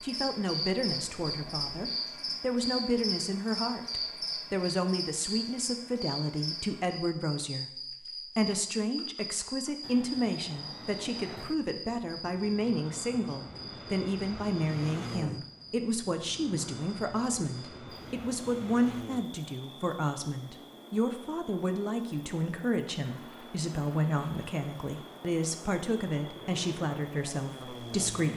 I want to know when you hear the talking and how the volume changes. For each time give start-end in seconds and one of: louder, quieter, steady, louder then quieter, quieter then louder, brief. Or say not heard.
0.0-28.3 steady.